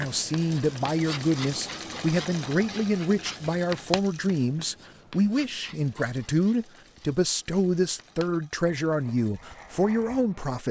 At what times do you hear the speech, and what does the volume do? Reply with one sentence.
You can hear the speech from 0.0 to 10.6 s, at a steady volume.